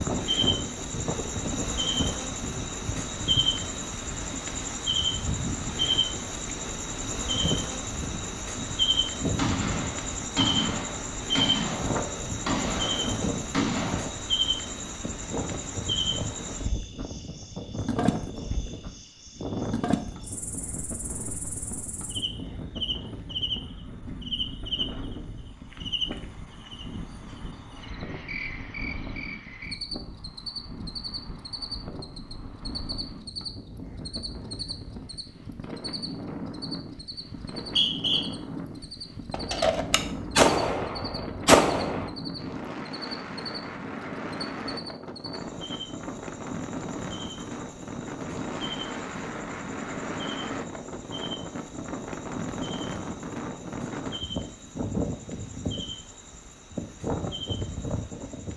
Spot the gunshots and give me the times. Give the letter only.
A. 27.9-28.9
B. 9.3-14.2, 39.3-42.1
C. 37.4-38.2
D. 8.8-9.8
B.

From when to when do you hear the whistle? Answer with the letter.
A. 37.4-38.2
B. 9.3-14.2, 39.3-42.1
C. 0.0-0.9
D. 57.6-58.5
A.